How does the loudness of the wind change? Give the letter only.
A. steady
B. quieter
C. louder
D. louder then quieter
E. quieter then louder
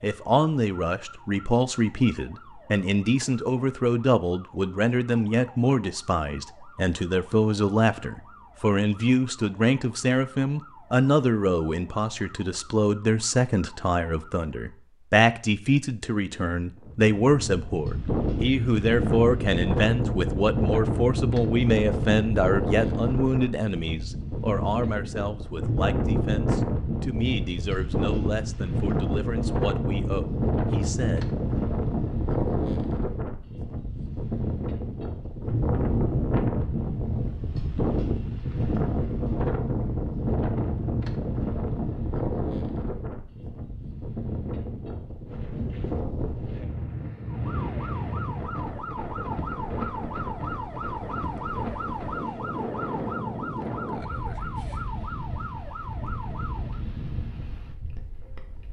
B.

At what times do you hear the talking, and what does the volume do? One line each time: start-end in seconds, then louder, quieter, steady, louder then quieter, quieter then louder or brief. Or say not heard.
0.0-31.2 quieter.